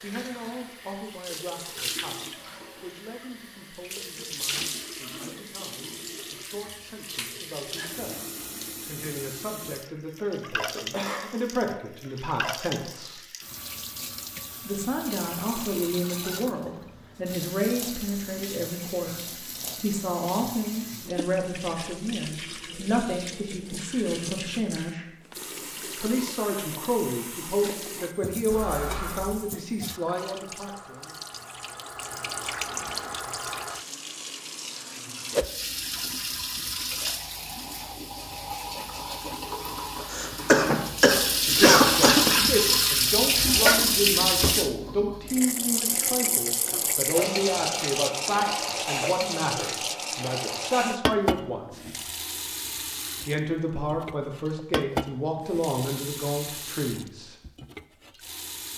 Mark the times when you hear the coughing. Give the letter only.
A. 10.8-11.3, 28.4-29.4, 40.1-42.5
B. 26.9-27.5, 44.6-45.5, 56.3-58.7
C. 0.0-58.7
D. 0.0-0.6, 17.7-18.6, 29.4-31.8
A.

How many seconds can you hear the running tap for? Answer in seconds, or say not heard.
59 s.